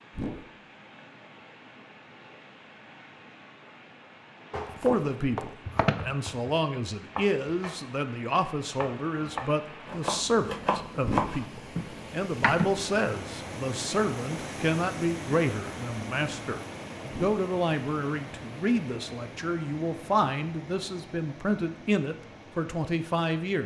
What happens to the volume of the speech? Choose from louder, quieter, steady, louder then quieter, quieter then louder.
steady.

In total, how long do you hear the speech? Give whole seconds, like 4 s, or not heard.
19 s.